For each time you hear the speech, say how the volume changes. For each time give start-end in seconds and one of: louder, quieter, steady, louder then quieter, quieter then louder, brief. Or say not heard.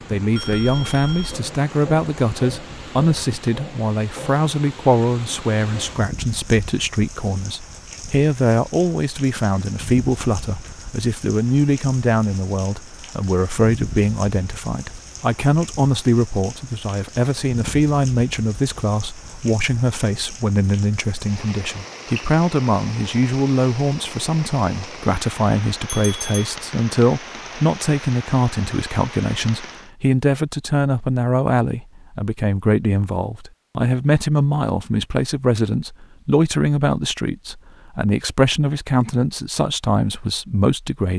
0.1-41.1 steady.